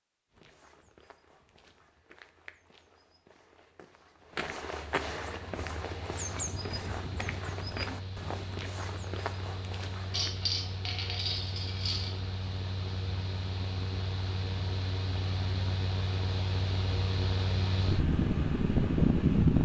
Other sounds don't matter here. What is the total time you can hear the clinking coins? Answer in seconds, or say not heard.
2 s.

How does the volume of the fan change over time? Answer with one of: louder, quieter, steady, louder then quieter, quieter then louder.
louder.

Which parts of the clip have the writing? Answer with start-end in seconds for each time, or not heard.
not heard.